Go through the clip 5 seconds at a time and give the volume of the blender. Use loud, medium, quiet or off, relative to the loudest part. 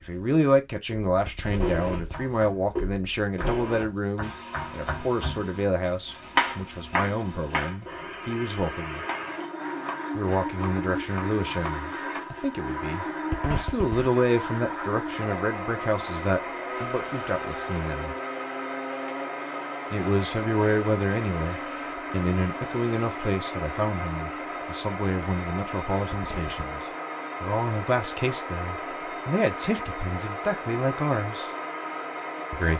loud, medium, loud, loud, loud, loud, loud.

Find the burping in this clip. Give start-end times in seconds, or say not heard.
not heard.